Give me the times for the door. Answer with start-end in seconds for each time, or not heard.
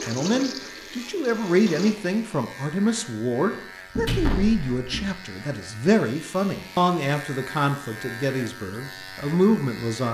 4.0-5.1.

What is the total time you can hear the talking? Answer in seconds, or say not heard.
10 s.